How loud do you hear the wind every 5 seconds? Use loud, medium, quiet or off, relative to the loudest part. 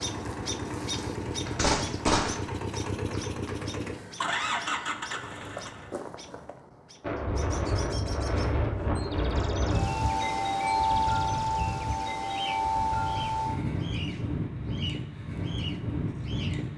off, loud, loud, medium.